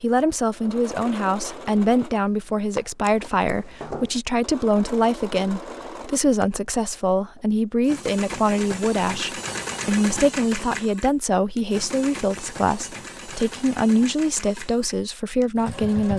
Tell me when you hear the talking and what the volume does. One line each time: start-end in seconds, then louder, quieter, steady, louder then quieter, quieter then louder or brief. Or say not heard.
0.0-16.1 steady.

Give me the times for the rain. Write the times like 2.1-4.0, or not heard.
not heard.